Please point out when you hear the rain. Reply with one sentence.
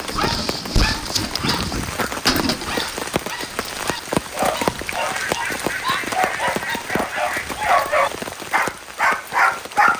You can hear the rain from 0.0 to 9.9 s.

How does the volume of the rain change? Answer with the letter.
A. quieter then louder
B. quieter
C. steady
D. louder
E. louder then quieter
E.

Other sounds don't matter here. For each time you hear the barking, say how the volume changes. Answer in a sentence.
The barking can be heard from 0.0 to 9.9 s, getting louder.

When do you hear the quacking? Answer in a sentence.
The quacking can be heard from 1.4 to 2.5 s and from 5.1 to 7.6 s.